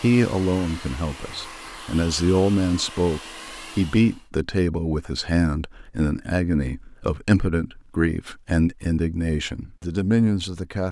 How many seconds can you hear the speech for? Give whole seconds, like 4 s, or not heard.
11 s.